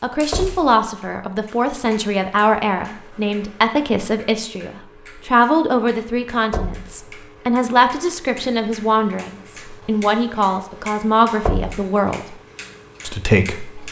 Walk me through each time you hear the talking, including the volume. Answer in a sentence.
The talking can be heard from 0.0 to 12.3 s, at a steady volume; and briefly from 13.1 to 13.8 s.